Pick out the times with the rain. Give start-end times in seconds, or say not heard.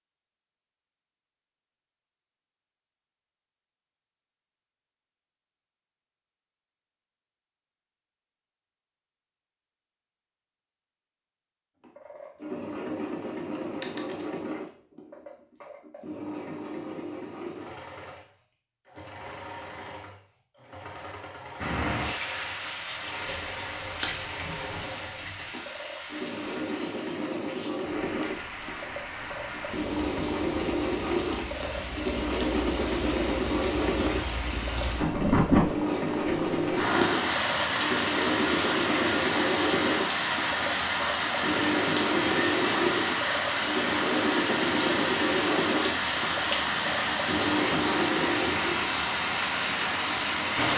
21.6-50.7.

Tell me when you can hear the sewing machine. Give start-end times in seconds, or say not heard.
11.8-49.0.